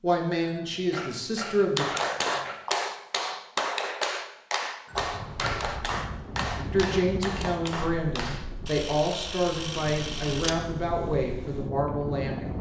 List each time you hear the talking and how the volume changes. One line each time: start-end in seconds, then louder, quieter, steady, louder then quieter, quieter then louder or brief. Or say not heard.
0.0-1.9 brief
6.5-12.5 steady.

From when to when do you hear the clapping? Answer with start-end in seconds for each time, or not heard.
1.8-8.4.